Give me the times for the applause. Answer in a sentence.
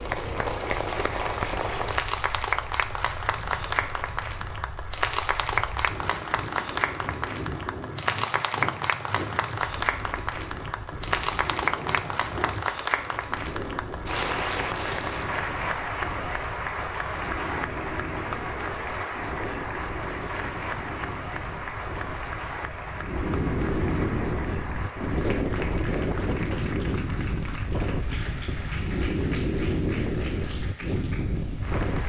You can hear the applause from 0.0 to 32.0 s.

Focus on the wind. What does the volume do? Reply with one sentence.
The loudness of the wind goes up.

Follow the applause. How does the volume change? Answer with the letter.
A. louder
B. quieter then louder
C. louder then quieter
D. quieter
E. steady
D.